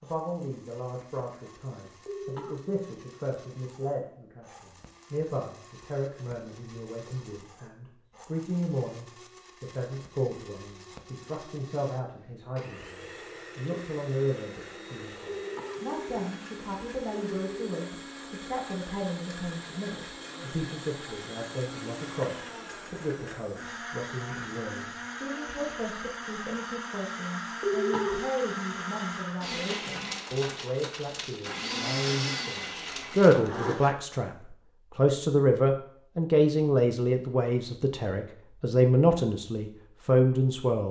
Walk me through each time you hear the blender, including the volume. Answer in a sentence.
The blender can be heard from 0.0 to 34.0 s, getting louder.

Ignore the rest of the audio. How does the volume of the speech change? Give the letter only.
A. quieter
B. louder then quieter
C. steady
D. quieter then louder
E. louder
E.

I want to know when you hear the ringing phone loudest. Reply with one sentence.
The loudest moment of the ringing phone is at 28 seconds.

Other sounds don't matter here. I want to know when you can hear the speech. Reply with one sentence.
You can hear the speech from 0.0 to 40.8 s.